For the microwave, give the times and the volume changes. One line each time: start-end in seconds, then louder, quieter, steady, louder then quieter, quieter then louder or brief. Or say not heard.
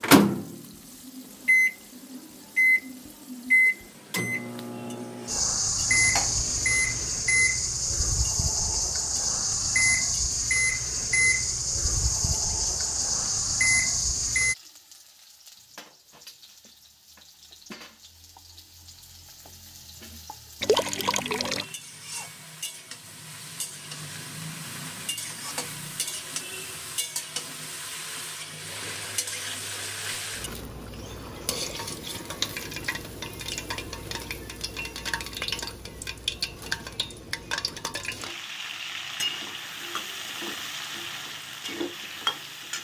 0.0-14.6 steady.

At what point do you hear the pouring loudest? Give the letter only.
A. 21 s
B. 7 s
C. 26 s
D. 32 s
A.